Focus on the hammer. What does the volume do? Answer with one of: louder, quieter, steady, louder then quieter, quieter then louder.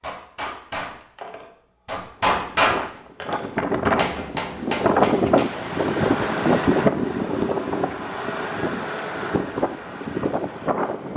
louder then quieter.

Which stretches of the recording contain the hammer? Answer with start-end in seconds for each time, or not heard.
0.0-6.1.